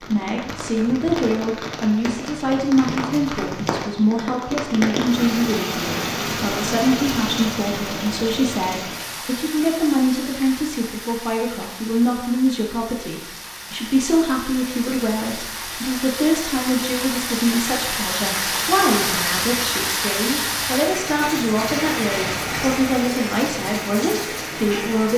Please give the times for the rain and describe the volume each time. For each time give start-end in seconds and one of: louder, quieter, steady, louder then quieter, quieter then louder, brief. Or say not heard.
0.0-25.1 quieter then louder.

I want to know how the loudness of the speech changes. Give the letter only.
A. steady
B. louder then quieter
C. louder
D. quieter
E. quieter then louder
A.